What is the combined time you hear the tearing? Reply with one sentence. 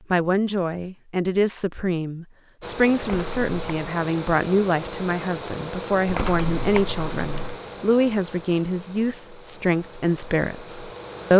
You can hear the tearing for 2 seconds altogether.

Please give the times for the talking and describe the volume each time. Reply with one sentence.
You can hear the talking from 0.1 to 11.3 s, at a steady volume.